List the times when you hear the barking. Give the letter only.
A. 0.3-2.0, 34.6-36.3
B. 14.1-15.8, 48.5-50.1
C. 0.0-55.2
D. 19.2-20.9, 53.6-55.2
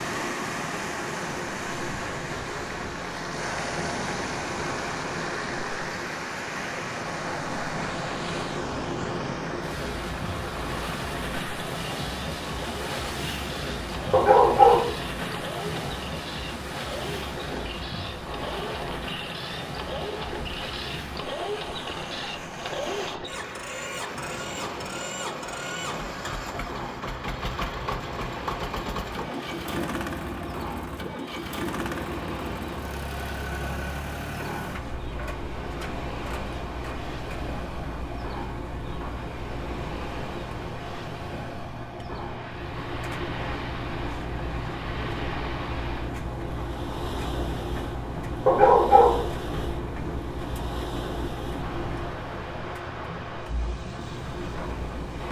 B.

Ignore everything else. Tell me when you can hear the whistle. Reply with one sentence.
You can't hear the whistle here.